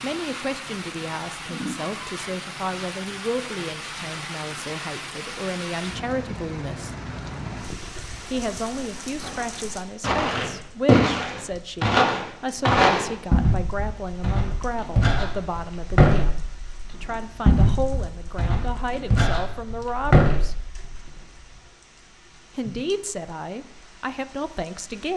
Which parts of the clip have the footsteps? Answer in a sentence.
The footsteps can be heard from 9.2 to 20.9 s.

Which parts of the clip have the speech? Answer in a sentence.
You can hear the speech from 0.0 to 7.0 s, from 8.2 to 20.6 s and from 22.6 to 25.1 s.